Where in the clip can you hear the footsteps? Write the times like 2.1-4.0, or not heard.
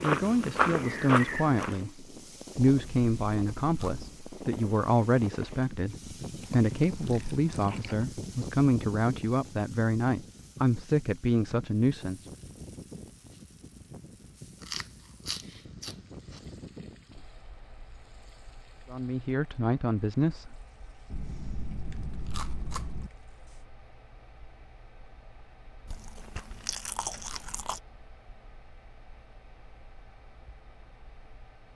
0.0-1.8.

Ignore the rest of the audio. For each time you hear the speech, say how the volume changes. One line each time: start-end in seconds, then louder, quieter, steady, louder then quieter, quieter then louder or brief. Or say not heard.
0.0-12.2 steady
18.9-20.6 brief.